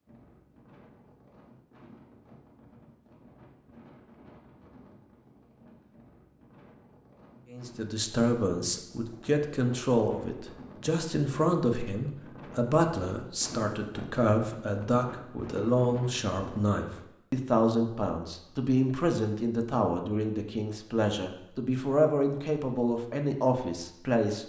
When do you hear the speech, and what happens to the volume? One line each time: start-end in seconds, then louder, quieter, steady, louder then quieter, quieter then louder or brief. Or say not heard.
7.5-24.4 steady.